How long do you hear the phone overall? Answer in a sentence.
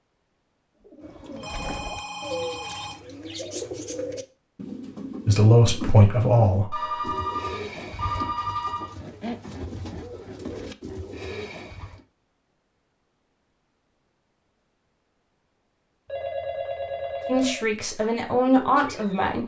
The phone can be heard for 6 seconds in total.